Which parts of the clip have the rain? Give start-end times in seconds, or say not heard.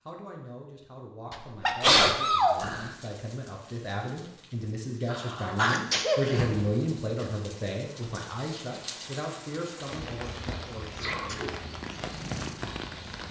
2.5-13.2.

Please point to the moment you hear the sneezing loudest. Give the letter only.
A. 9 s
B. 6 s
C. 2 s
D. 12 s
C.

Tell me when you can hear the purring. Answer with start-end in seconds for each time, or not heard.
11.6-13.2.